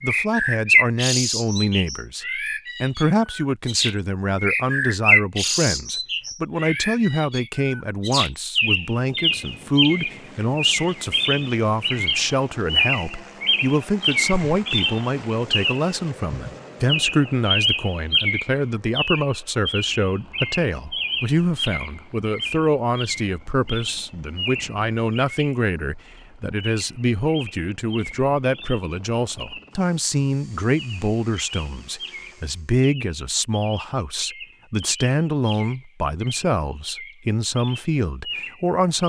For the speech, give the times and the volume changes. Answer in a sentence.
The speech can be heard from 0.0 to 39.0 s, at a steady volume.